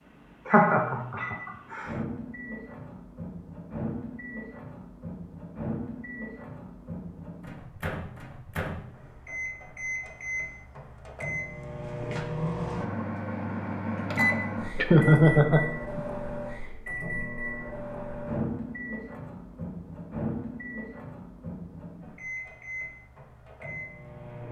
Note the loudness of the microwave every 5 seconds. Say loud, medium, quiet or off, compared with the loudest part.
medium, medium, loud, loud, medium.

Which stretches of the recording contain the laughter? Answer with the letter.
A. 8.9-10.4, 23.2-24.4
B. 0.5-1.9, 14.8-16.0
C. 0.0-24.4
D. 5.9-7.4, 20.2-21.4
B.